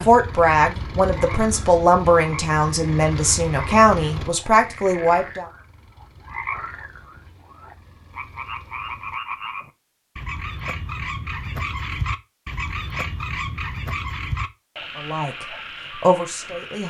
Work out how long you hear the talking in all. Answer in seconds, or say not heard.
7 s.